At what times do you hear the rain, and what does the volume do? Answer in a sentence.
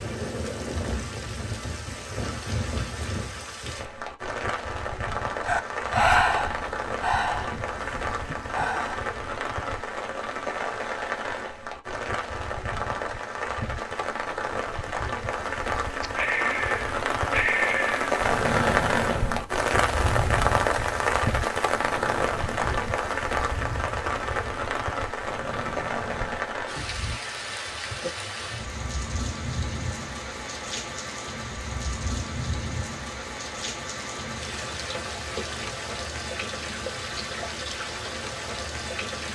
The rain can be heard from 0.0 to 39.3 s, getting louder then quieter.